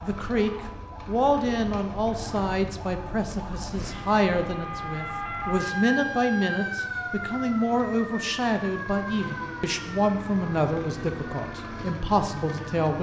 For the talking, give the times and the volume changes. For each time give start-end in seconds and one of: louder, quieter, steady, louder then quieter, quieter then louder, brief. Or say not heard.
0.0-12.9 steady.